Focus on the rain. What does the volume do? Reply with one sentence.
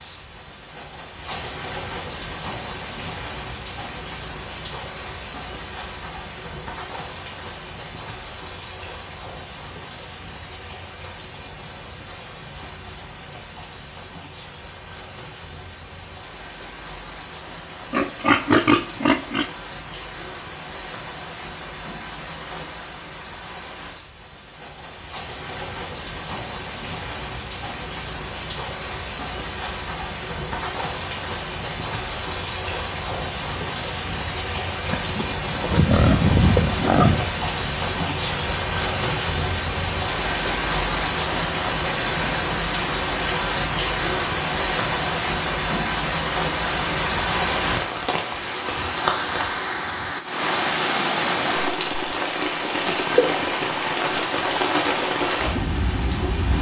The loudness of the rain goes up.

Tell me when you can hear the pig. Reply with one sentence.
The pig can be heard from 17.9 to 19.4 s and from 34.9 to 37.4 s.